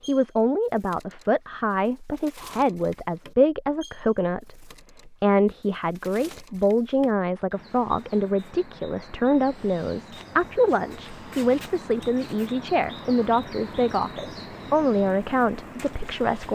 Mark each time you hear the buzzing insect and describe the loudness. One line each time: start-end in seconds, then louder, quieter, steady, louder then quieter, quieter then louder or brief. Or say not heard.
not heard.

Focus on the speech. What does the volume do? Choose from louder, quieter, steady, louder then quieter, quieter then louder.
steady.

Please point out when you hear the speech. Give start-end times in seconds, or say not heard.
0.1-16.5.